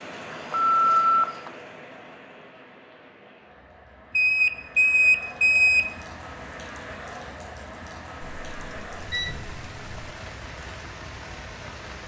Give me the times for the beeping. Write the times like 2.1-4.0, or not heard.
0.3-1.5, 4.2-5.8, 8.2-10.1.